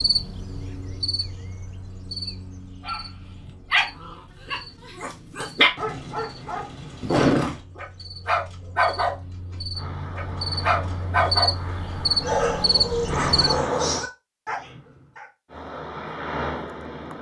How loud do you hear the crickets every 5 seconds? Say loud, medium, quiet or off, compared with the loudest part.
medium, quiet, loud, off.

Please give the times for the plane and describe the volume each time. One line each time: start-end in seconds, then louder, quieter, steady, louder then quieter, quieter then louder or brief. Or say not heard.
9.8-14.1 louder
15.4-17.1 brief.